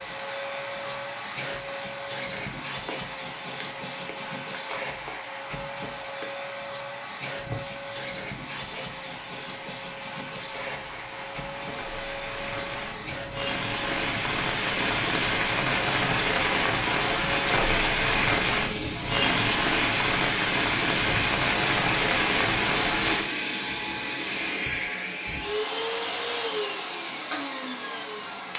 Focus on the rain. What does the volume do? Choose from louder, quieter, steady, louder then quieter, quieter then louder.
louder.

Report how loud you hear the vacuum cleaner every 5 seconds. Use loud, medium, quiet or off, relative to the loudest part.
medium, medium, medium, loud, loud, loud.